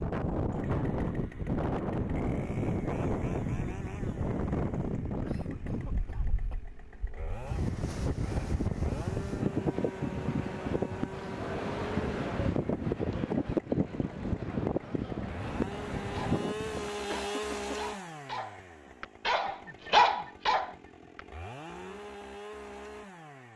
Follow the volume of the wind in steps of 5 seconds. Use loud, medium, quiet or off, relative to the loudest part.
loud, loud, loud, loud, off.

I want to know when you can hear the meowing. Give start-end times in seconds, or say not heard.
not heard.